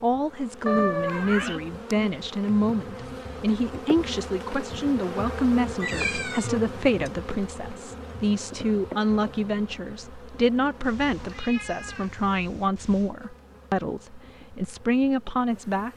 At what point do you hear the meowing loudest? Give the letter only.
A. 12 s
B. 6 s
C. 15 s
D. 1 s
D.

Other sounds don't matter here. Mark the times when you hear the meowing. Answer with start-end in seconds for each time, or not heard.
0.7-1.6, 5.8-6.5, 10.8-13.2.